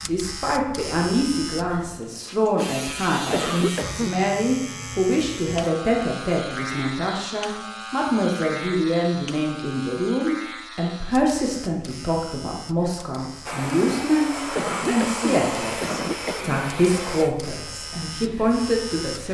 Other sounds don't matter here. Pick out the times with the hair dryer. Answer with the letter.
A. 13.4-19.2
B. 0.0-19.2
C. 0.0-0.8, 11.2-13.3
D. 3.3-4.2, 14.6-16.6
A.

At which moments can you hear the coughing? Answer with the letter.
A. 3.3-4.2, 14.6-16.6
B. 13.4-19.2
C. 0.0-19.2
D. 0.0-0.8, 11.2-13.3
A.